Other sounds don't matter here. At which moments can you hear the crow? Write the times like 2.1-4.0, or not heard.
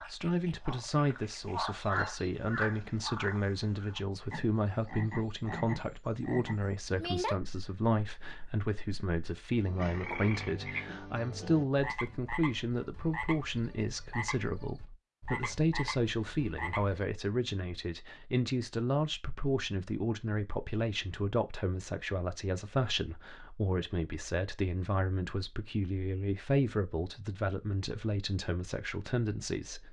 not heard.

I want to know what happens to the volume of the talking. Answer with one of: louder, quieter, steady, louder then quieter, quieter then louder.
steady.